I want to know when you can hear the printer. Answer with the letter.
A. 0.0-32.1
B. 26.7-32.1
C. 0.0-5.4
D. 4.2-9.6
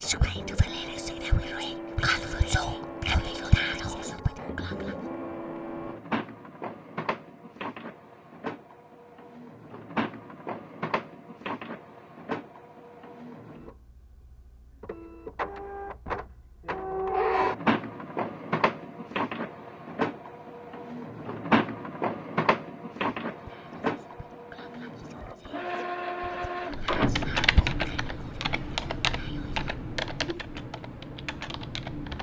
A.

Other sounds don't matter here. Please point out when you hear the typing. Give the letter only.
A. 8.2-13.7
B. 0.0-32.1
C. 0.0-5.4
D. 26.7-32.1
D.